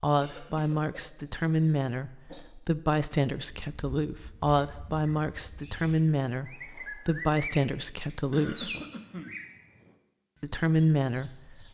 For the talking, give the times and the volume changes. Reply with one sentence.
The talking can be heard from 0.0 to 8.8 s, at a steady volume; and briefly from 10.4 to 11.7 s.